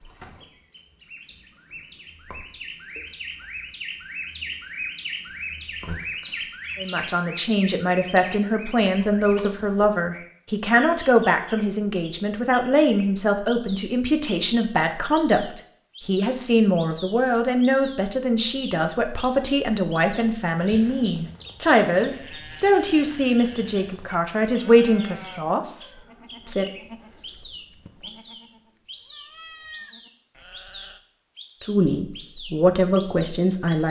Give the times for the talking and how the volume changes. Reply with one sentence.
You can hear the talking from 6.8 to 26.7 s, at a steady volume; and briefly from 31.6 to 33.8 s.